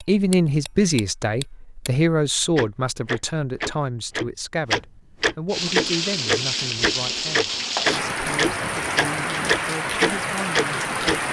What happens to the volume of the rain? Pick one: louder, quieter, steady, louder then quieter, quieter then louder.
steady.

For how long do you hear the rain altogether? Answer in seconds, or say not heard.
6 s.